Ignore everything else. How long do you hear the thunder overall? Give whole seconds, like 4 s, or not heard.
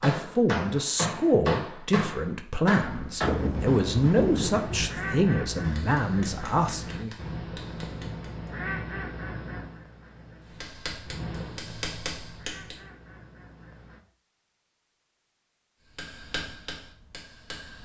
2 s.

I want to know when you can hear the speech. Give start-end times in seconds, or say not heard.
0.0-7.1.